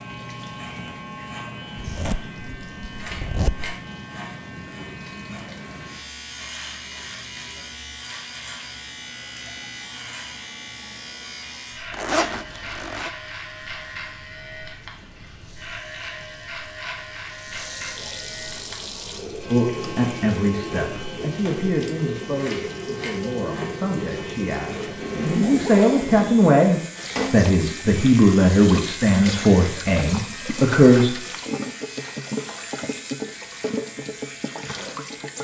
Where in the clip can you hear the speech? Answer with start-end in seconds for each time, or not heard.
19.5-31.1.